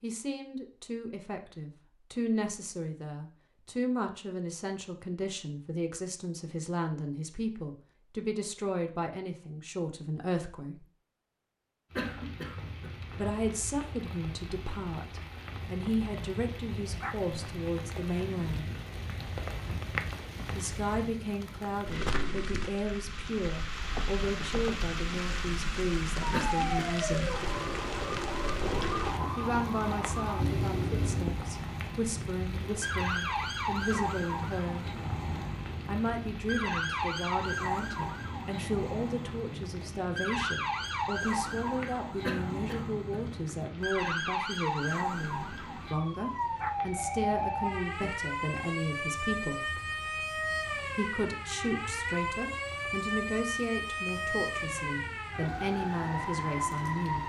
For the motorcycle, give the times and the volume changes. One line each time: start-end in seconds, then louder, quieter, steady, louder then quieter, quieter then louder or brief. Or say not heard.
not heard.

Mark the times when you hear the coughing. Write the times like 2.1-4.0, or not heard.
11.9-12.9, 26.3-27.3, 42.2-43.2.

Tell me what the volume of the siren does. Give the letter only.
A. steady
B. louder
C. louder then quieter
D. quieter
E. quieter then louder
A.